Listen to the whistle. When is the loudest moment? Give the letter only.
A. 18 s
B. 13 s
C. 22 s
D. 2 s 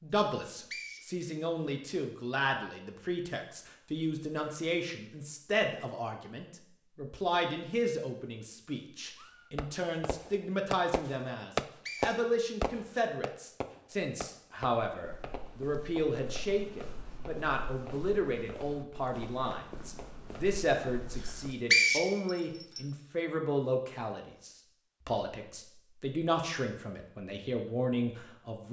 C.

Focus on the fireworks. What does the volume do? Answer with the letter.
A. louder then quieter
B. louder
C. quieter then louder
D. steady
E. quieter
E.